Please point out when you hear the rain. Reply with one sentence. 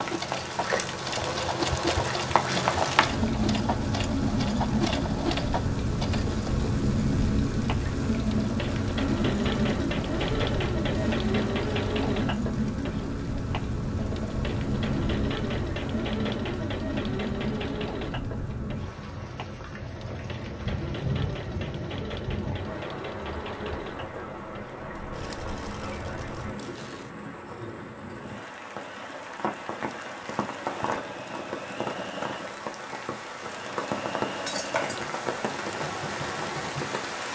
The rain can be heard from 0.0 to 37.3 s.